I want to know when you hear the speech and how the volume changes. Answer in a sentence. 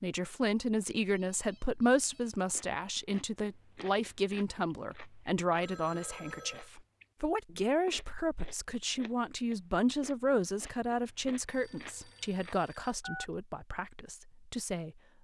You can hear the speech from 0.0 to 14.9 s, getting quieter.